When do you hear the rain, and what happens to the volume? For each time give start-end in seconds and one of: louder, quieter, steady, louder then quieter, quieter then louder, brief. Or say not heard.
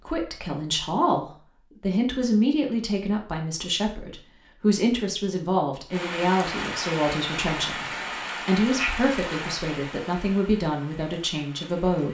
5.9-12.0 quieter.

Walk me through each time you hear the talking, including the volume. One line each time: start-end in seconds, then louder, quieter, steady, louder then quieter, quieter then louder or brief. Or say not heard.
0.0-12.0 steady.